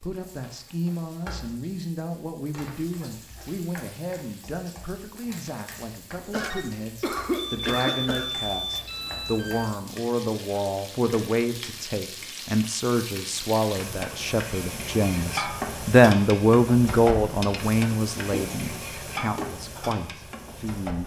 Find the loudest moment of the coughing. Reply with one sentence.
The volume of the coughing peaks at 7 seconds.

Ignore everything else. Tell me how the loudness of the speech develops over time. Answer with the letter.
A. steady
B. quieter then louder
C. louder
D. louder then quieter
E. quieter
C.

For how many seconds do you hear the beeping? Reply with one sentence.
You can hear the beeping for 2 seconds altogether.